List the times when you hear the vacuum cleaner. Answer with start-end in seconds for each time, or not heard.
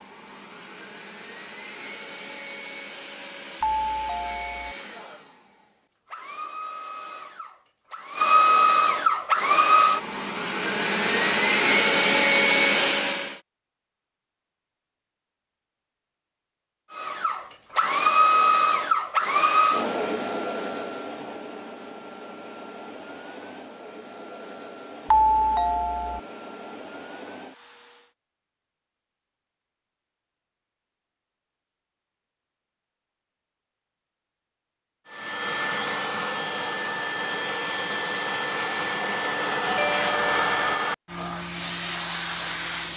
0.0-13.4, 16.9-28.1, 35.0-42.9.